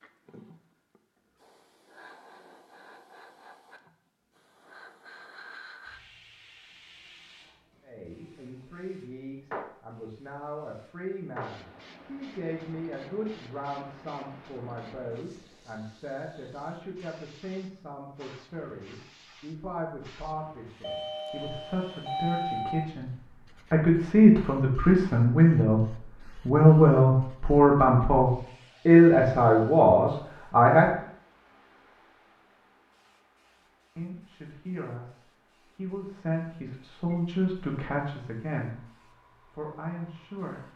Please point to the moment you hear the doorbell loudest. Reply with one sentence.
The volume of the doorbell peaks at 22 seconds.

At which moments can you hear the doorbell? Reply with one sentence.
The doorbell can be heard from 20.8 to 22.9 s.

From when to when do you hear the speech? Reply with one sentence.
The speech can be heard from 7.8 to 30.9 s and from 34.0 to 40.7 s.